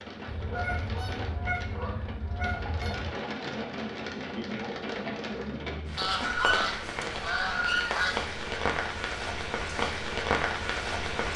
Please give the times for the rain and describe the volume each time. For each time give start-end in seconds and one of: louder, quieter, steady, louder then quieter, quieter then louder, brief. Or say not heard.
0.0-11.3 louder.